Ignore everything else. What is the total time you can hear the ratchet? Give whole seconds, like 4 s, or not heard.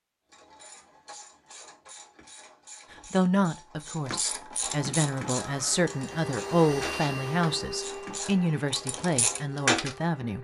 10 s.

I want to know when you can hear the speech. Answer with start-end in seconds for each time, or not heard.
2.9-10.3.